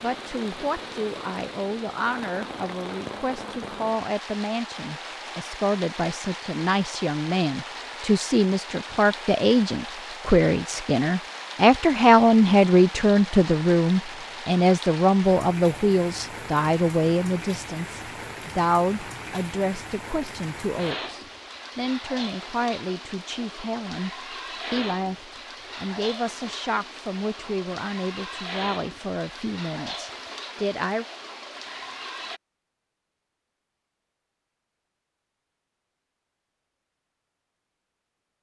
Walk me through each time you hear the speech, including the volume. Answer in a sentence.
The speech can be heard from 0.0 to 31.1 s, getting louder then quieter.